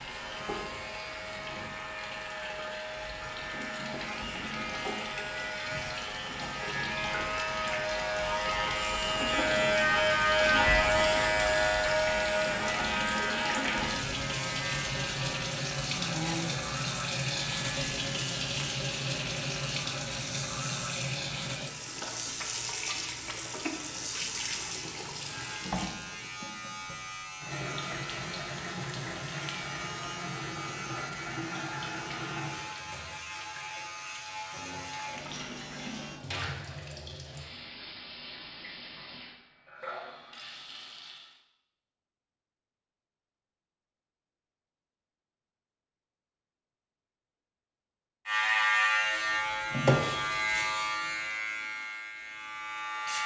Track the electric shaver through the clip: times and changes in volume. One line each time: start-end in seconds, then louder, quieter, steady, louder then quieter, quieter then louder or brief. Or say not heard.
0.0-36.2 louder then quieter
48.2-53.2 quieter.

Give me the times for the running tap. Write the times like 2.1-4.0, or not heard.
0.0-41.4.